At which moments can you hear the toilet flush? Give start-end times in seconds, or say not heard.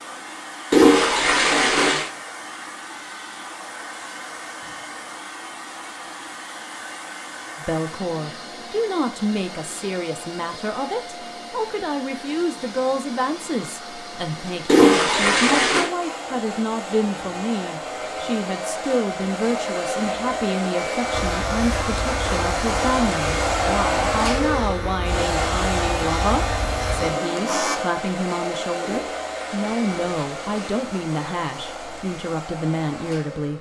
0.7-2.1, 14.7-15.9, 28.8-30.9.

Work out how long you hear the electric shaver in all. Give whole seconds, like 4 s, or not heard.
7 s.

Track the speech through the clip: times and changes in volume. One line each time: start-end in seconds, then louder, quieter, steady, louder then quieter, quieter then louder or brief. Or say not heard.
7.5-33.5 steady.